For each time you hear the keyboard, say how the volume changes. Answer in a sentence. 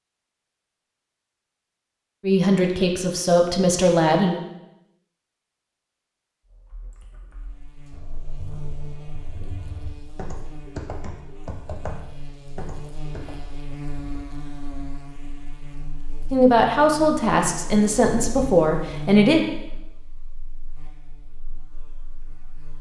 The keyboard can be heard from 6.5 to 13.3 s, getting louder.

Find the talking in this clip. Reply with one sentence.
The talking can be heard from 2.2 to 4.4 s and from 16.3 to 19.4 s.